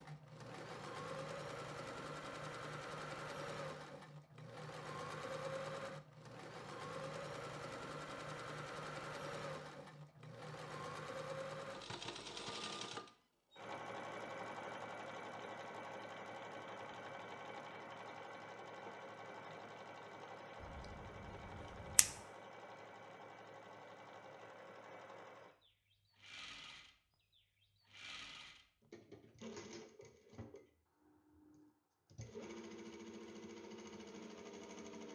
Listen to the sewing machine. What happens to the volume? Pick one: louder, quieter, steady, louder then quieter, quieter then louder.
quieter.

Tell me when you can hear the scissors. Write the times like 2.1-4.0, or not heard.
20.6-22.1.